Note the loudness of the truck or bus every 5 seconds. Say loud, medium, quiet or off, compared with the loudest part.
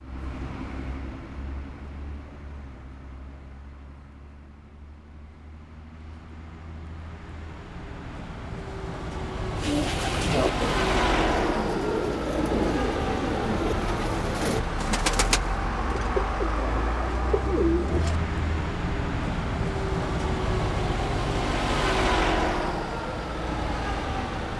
quiet, medium, loud, loud, loud.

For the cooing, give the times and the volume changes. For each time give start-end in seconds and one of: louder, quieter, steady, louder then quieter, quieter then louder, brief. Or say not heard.
9.6-18.2 steady.